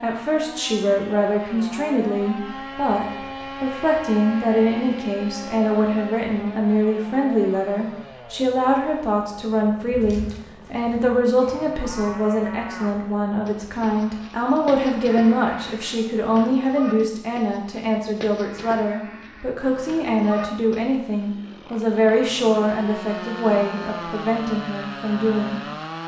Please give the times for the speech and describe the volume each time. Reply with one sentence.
The speech can be heard from 0.0 to 25.6 s, at a steady volume.